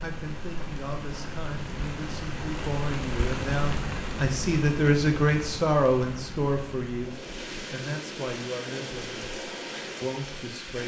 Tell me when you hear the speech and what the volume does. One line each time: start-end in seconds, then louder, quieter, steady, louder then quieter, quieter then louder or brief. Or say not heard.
0.0-9.3 louder then quieter
10.0-10.8 brief.